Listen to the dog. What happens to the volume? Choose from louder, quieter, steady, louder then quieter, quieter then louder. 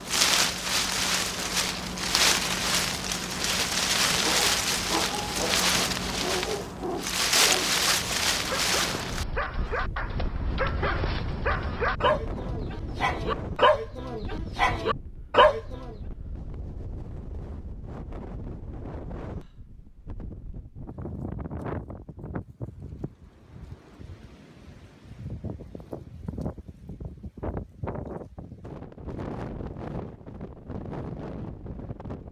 louder.